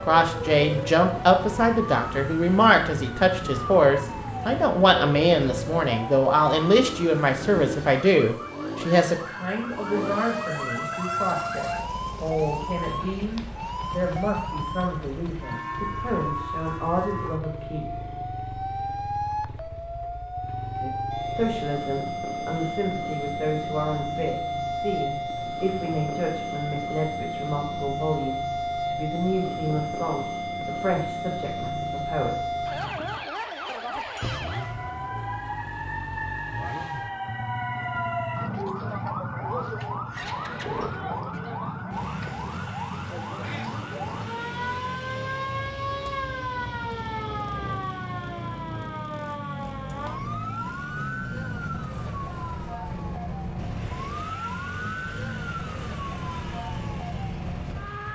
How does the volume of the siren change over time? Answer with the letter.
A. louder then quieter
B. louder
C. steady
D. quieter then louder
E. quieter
C.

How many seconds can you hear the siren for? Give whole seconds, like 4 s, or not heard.
58 s.